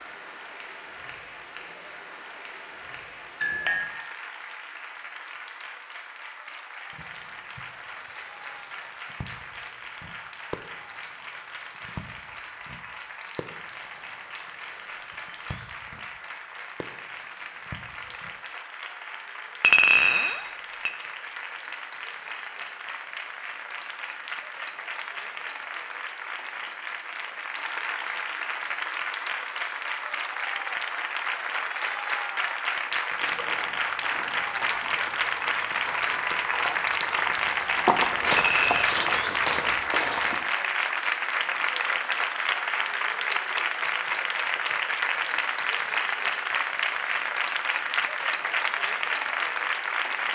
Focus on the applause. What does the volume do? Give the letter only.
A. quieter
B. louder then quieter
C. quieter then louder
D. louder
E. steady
D.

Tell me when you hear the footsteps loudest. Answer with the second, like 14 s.
38 s.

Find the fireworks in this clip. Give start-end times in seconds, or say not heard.
6.9-18.4.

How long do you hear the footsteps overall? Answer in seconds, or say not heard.
7 s.